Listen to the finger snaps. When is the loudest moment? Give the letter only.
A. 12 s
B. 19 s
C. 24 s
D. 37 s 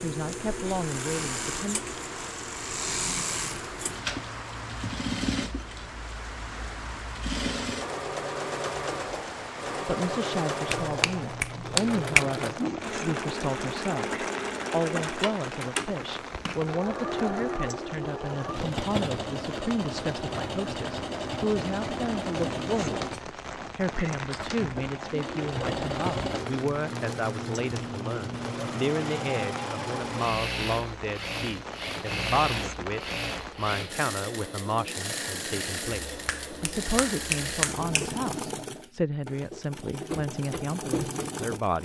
A.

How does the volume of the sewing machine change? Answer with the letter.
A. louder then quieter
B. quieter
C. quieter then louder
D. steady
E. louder
D.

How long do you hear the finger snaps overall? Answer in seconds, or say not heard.
4 s.